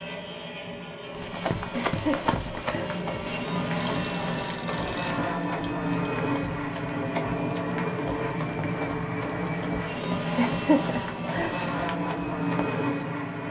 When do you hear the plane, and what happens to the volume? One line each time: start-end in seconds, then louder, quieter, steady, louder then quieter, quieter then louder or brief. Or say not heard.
0.0-13.4 louder.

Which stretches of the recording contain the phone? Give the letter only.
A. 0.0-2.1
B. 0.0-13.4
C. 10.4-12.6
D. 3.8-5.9
D.